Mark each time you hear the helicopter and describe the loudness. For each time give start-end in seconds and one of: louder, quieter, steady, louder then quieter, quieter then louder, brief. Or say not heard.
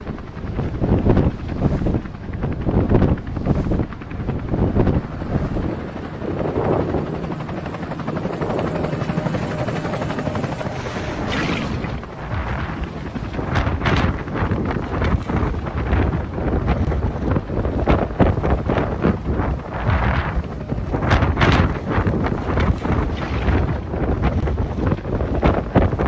0.0-26.0 louder then quieter.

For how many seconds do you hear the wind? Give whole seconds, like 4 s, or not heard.
26 s.